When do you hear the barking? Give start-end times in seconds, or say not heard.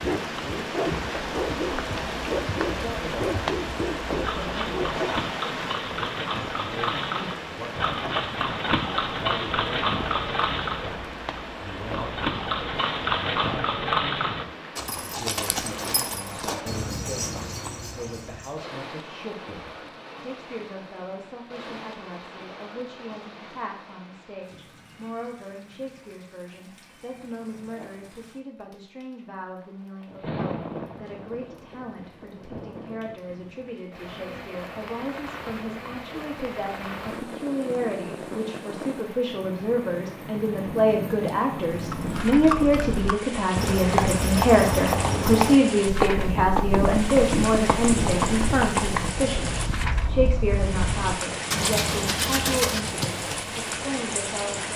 0.0-5.0.